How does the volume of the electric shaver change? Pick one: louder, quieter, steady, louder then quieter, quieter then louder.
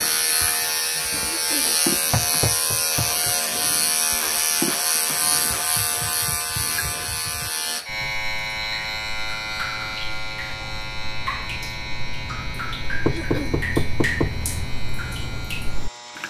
quieter.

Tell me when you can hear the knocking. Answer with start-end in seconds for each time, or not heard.
2.1-3.4, 13.0-14.5.